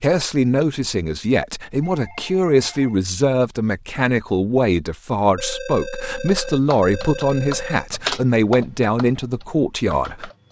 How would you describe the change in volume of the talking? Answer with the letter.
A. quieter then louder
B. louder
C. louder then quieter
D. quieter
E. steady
E.